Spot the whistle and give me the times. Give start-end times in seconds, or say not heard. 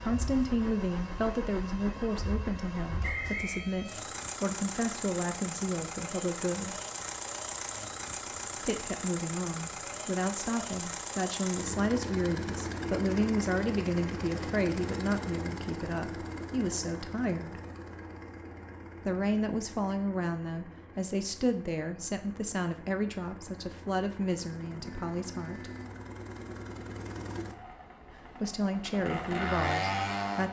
3.0-3.6.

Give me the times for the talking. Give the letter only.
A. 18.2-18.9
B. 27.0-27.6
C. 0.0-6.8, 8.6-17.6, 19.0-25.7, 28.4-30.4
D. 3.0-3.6
C.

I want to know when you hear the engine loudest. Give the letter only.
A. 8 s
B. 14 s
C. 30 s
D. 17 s
C.